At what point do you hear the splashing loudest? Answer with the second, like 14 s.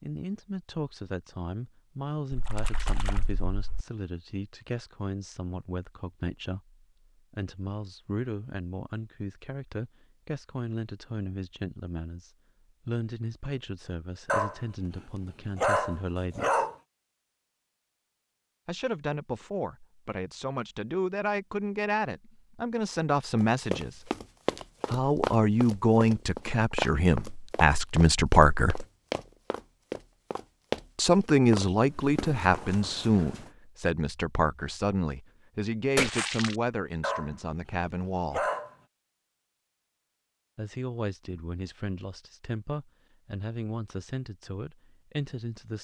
36 s.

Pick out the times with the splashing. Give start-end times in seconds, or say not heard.
2.3-3.9, 36.0-36.5.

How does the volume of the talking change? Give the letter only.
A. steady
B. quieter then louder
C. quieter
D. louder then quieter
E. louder
D.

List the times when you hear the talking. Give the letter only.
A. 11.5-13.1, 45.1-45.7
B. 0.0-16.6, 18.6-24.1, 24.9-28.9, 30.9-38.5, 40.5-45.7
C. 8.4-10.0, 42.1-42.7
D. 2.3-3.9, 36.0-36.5
B.